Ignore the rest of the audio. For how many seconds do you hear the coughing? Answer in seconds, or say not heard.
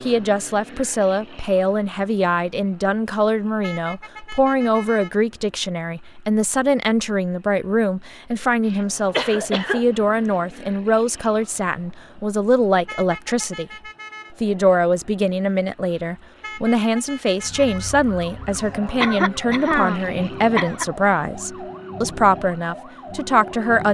4 s.